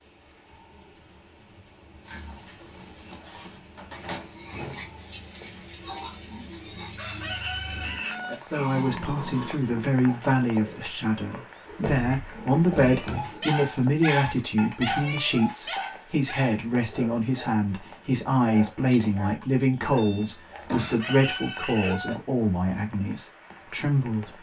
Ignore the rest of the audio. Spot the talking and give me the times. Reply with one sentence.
The talking can be heard from 8.5 to 24.3 s.